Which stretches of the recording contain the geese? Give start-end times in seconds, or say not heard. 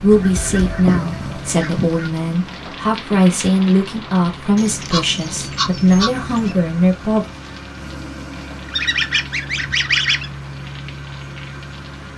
0.1-2.1, 4.5-6.5, 8.7-10.3.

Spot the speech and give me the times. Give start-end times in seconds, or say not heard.
0.0-7.2.